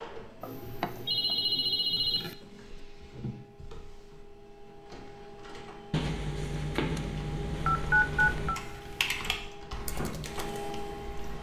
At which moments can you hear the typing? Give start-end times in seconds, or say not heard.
8.2-11.3.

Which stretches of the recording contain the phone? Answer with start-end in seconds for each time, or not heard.
0.4-2.4, 5.9-8.6.